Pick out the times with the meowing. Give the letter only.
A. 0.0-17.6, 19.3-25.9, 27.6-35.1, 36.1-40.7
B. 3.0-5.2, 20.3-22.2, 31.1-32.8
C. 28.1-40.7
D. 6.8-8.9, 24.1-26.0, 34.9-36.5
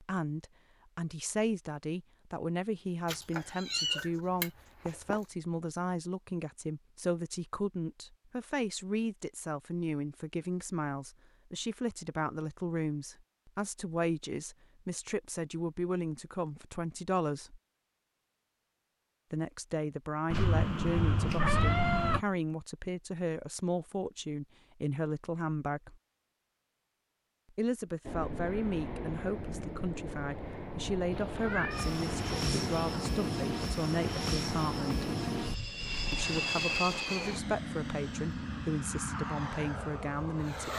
B.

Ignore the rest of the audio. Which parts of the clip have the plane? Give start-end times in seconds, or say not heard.
28.1-40.7.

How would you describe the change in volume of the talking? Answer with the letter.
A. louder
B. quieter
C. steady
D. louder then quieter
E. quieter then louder
C.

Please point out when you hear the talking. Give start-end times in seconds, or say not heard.
0.0-17.6, 19.3-25.9, 27.6-35.1, 36.1-40.7.